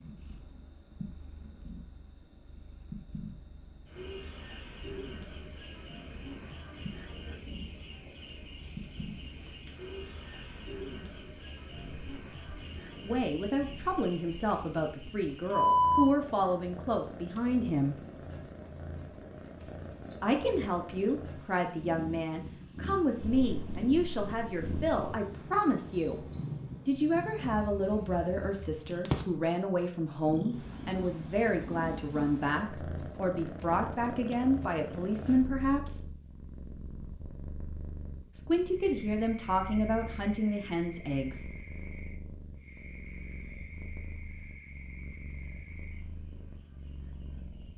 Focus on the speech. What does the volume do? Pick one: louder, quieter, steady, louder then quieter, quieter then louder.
steady.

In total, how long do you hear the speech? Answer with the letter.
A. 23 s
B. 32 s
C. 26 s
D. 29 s
A.